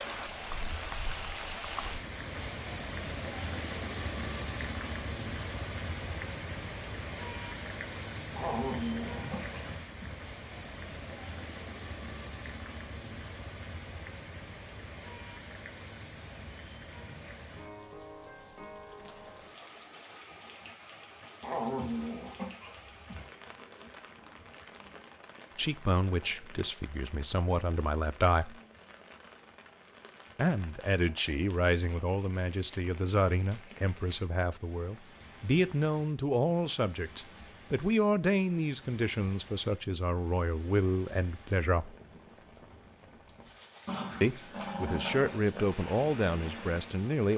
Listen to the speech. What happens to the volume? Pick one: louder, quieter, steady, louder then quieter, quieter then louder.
steady.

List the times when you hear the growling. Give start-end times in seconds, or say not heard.
8.3-10.2, 21.4-23.2, 43.9-45.8.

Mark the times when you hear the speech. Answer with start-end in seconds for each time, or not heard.
25.6-28.6, 30.4-41.9, 44.2-47.3.